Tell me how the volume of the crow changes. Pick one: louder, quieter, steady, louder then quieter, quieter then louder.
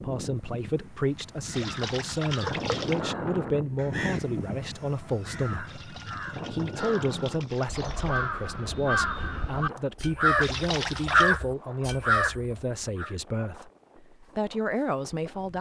louder.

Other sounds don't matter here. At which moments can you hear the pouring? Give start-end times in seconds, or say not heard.
1.5-3.0, 5.7-8.2, 10.4-11.4.